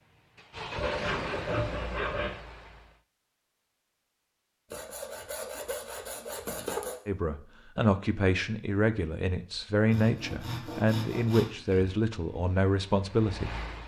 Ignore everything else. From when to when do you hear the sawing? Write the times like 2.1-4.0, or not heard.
0.8-2.3, 4.7-7.0, 9.9-11.9.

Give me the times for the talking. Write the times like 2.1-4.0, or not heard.
7.0-13.6.